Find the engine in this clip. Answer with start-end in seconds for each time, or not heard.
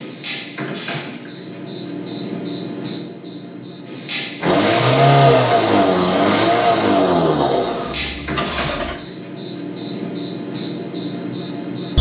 4.4-9.0.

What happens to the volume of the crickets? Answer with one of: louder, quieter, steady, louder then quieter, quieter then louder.
steady.